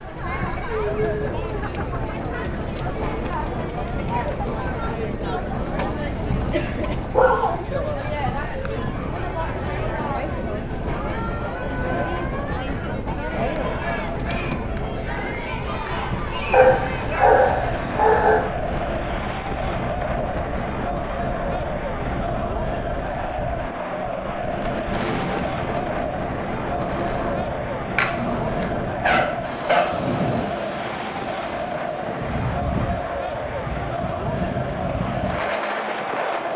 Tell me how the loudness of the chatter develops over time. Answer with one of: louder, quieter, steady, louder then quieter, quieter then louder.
steady.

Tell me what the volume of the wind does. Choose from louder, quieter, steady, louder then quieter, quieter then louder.
steady.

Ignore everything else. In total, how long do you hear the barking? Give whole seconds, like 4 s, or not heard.
6 s.